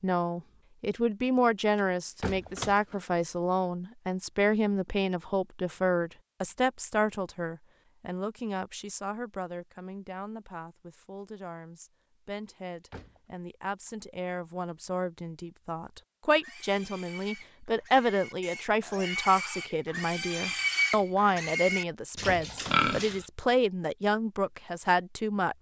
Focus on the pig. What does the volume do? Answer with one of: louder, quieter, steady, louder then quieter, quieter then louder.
louder.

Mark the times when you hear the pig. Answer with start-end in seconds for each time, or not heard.
16.4-23.2.